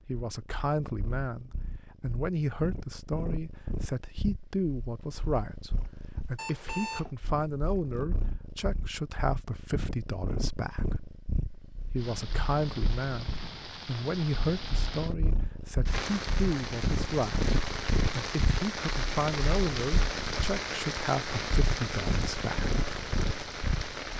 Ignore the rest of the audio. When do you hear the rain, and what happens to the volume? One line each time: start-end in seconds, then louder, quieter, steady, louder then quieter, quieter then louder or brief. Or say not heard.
11.9-24.1 louder.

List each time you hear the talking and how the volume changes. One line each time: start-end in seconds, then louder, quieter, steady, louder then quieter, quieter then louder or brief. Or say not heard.
0.1-10.9 steady
11.8-22.7 steady.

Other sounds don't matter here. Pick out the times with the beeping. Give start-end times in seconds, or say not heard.
6.3-7.1.